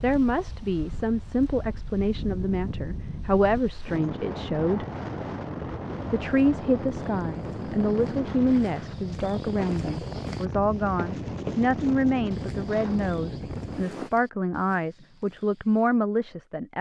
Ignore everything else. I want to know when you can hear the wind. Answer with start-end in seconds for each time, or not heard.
0.0-14.1.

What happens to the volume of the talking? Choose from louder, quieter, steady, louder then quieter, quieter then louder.
steady.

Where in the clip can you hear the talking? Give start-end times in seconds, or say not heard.
0.0-4.8, 6.1-16.7.